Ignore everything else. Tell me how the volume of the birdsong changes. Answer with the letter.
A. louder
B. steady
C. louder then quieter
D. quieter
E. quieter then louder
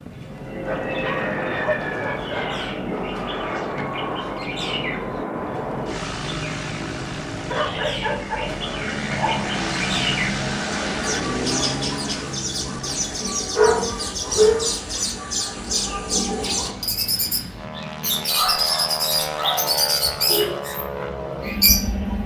A.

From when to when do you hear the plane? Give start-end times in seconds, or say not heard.
0.1-22.2.